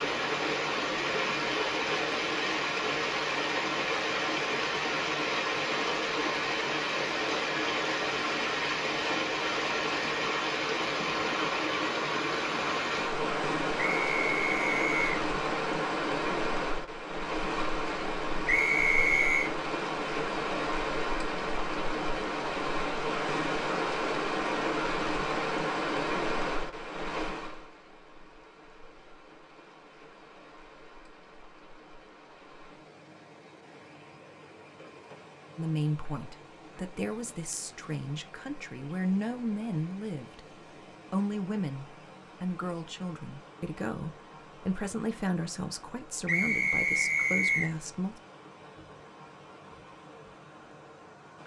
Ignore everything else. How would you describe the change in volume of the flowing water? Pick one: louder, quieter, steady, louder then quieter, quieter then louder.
quieter.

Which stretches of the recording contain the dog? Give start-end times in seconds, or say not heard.
not heard.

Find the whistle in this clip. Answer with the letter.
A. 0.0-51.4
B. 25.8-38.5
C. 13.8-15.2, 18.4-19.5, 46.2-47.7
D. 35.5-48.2
C.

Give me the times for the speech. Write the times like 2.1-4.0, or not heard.
35.5-48.2.